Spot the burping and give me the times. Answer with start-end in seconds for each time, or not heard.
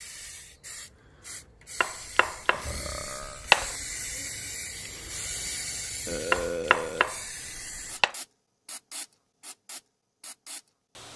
2.5-3.5, 6.0-7.2.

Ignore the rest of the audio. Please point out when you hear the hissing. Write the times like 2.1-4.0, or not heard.
0.0-11.1.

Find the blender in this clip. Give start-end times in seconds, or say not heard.
not heard.